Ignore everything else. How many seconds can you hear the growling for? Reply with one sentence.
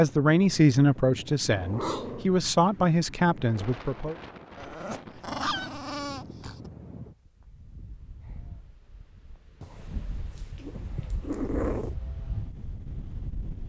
The growling can be heard for 5 seconds in total.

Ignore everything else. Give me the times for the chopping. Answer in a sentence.
The chopping can't be heard in this clip.